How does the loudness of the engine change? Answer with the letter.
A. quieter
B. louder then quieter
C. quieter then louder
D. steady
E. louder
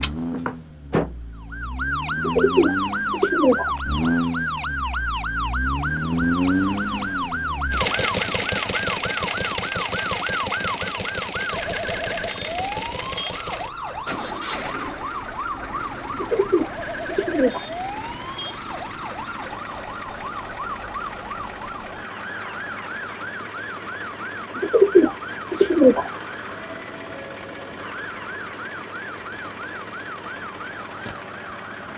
A.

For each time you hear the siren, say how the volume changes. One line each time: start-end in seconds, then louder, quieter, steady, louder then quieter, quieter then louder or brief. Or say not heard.
0.0-31.9 quieter.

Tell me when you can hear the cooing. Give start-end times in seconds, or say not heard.
2.1-3.7, 16.1-17.6, 24.6-26.1.